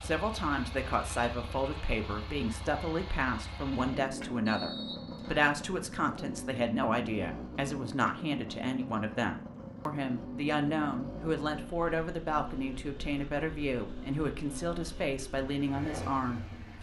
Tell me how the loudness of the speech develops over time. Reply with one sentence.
The volume of the speech stays about the same.